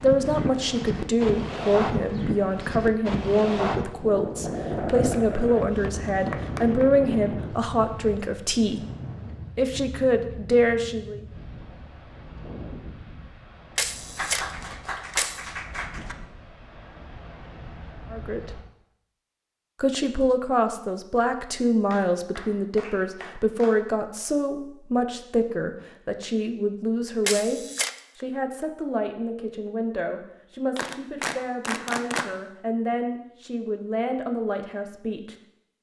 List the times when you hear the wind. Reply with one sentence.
You can hear the wind from 0.0 to 18.6 s.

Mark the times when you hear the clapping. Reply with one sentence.
You can hear the clapping from 4.8 to 6.8 s, from 14.2 to 16.1 s, from 21.9 to 23.9 s and from 30.8 to 32.3 s.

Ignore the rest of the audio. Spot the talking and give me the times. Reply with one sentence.
You can hear the talking from 0.0 to 8.8 s, from 9.6 to 11.2 s, from 18.1 to 18.6 s and from 19.8 to 35.4 s.